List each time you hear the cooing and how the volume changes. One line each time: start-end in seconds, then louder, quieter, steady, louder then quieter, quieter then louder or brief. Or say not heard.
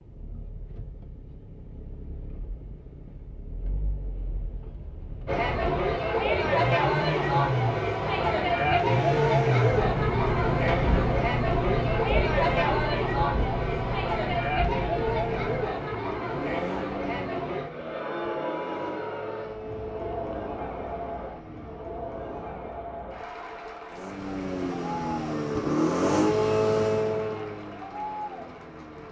not heard.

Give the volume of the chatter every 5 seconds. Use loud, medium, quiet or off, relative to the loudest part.
off, loud, loud, medium, quiet, quiet.